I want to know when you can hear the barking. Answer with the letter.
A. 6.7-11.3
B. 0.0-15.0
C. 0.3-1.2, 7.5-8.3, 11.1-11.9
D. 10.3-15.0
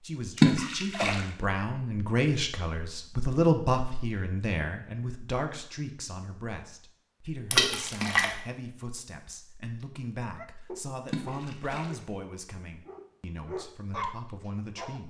D.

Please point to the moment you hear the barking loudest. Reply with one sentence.
The volume of the barking peaks at 14 seconds.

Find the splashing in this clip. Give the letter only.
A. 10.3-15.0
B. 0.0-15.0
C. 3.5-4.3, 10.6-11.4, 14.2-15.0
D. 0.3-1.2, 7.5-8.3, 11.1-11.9
D.